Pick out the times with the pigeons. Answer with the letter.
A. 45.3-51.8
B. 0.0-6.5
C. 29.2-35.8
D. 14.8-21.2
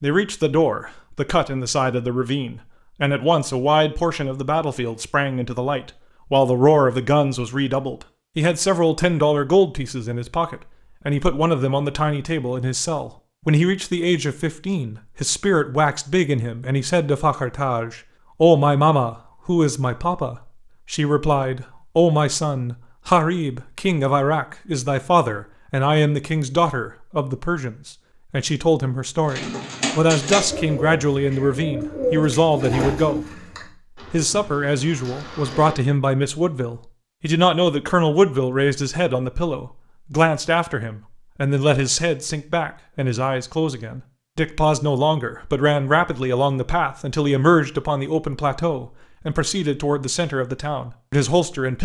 C.